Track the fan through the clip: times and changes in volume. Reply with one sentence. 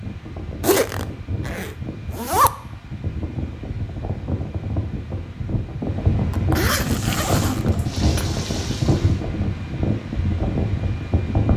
You can hear the fan from 0.0 to 11.5 s, getting louder.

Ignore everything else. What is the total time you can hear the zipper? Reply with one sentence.
You can hear the zipper for 4 seconds altogether.